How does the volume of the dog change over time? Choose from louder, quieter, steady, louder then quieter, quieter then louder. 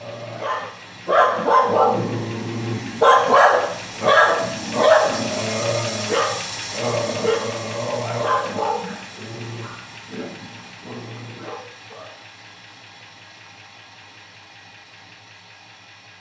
quieter.